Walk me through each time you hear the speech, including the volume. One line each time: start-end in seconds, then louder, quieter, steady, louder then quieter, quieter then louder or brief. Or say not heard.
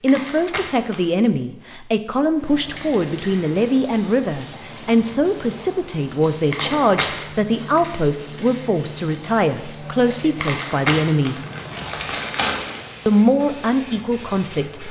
0.0-11.4 steady
13.1-14.8 brief.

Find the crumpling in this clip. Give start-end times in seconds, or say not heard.
0.1-1.1, 6.5-7.2, 10.3-12.8.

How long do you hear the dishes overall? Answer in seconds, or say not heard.
not heard.